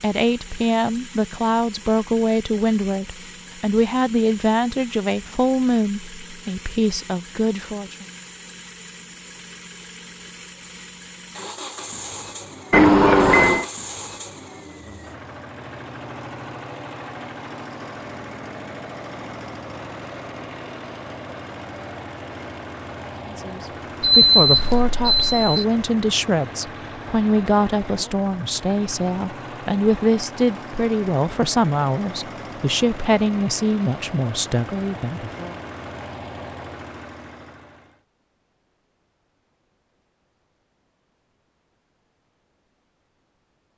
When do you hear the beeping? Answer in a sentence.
The beeping can be heard from 12.7 to 13.7 s and from 24.0 to 25.6 s.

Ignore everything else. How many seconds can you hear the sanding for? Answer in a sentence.
You can't hear the sanding here.